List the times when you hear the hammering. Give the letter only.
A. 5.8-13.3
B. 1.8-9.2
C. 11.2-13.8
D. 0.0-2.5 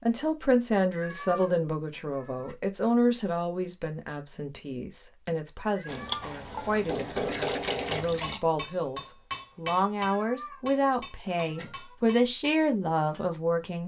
A.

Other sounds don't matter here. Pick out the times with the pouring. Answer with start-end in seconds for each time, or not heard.
5.8-8.4.